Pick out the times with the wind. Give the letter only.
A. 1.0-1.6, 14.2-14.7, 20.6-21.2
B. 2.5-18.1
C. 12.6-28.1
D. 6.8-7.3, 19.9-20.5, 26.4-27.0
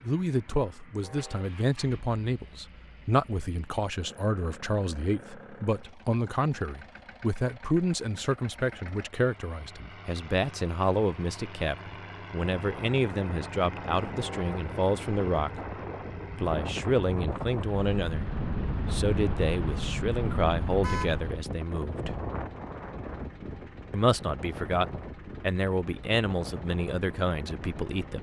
C.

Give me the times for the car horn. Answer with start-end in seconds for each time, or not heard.
1.0-1.6, 14.2-14.7, 20.6-21.2.